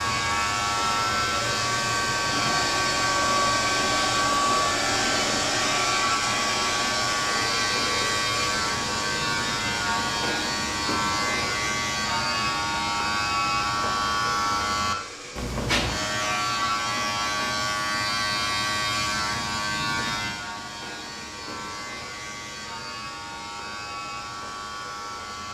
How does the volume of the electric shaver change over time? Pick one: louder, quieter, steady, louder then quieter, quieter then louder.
quieter.